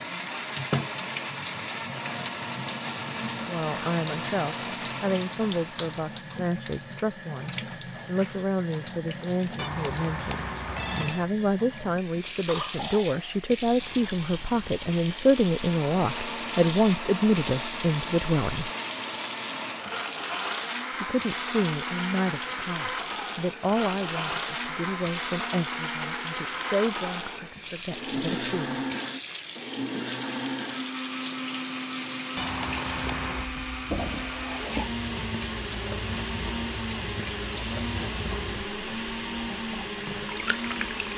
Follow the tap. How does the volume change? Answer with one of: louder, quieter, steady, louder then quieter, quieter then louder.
steady.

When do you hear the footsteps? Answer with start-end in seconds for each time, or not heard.
not heard.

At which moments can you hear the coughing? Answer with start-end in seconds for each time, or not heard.
12.4-13.1.